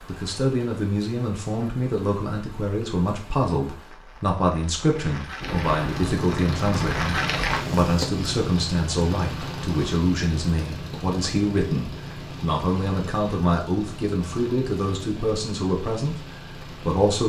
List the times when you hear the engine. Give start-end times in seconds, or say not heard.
5.4-17.1.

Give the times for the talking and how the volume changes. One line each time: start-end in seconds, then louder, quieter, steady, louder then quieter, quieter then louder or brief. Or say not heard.
0.1-17.2 steady.